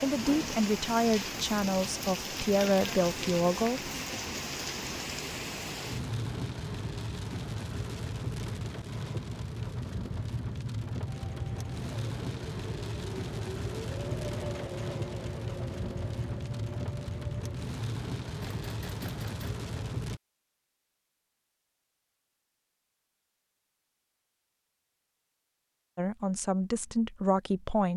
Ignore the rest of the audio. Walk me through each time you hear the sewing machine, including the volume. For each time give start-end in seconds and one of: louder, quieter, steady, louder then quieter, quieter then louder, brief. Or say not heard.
11.1-19.6 louder then quieter.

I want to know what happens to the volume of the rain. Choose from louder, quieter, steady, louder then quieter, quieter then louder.
steady.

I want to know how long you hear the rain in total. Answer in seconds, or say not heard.
20 s.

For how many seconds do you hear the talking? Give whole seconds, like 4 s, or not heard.
6 s.